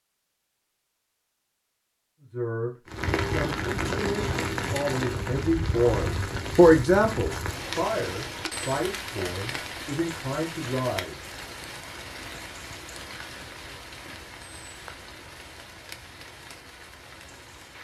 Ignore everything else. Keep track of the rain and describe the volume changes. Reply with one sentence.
The loudness of the rain goes down.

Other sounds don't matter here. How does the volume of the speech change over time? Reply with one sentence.
The volume of the speech goes up, then down.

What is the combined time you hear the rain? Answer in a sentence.
You can hear the rain for 15 seconds altogether.